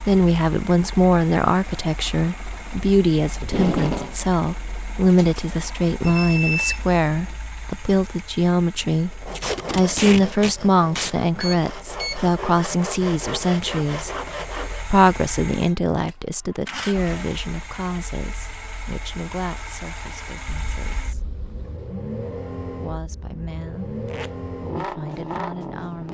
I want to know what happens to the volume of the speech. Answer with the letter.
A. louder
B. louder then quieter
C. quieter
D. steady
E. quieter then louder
C.